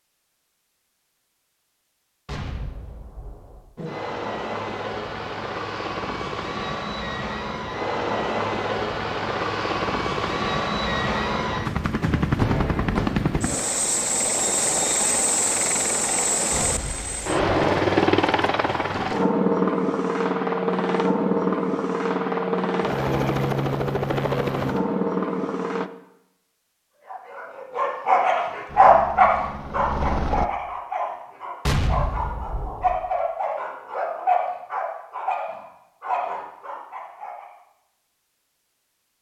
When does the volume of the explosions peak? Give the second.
32 s.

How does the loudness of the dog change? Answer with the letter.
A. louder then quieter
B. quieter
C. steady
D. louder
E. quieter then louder
B.